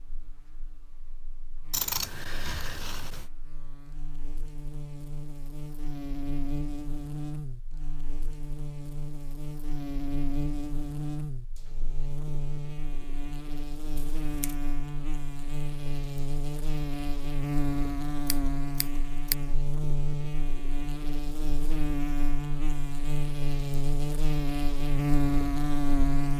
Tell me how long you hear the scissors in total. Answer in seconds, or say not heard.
3 s.